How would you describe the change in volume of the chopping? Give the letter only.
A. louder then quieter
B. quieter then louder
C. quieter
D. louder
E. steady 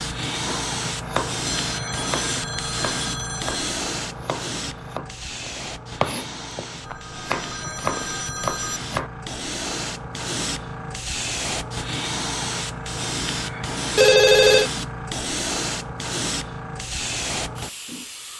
B.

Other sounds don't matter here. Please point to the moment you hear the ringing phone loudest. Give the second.
14 s.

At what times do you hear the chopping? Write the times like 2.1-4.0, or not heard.
0.5-9.1.